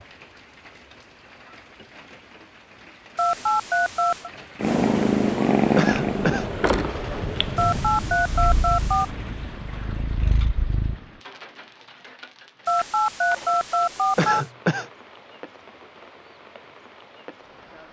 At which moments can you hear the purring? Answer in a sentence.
The purring can be heard from 4.6 to 10.9 s.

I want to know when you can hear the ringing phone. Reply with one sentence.
You can hear the ringing phone from 3.1 to 4.3 s, from 7.5 to 9.1 s and from 12.7 to 14.4 s.